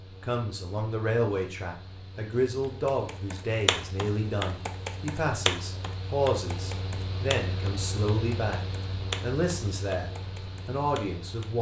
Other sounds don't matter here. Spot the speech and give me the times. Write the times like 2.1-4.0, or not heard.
0.2-8.6, 9.2-11.5.